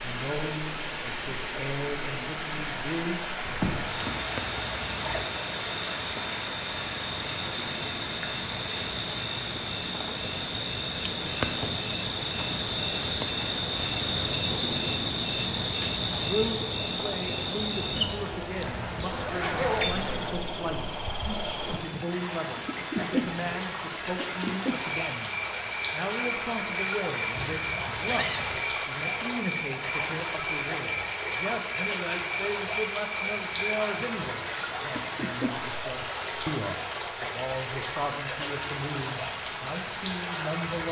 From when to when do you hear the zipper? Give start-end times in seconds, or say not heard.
3.5-5.3, 18.6-20.5, 27.4-28.6.